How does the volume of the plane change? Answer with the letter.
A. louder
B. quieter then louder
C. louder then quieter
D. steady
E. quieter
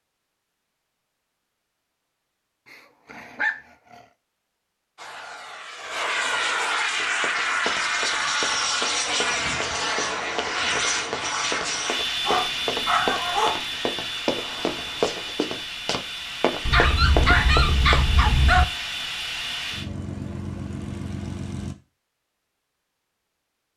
E.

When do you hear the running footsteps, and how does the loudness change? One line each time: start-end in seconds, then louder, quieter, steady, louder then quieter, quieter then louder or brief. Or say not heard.
6.9-17.9 louder.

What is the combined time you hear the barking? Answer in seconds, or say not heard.
5 s.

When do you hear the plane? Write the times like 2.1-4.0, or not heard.
5.0-21.8.